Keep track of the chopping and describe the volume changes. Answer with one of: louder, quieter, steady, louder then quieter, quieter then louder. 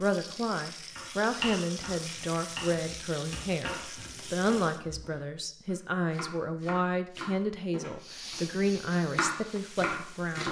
quieter then louder.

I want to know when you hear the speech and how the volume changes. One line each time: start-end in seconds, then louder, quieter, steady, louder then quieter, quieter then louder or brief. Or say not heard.
0.0-10.4 steady.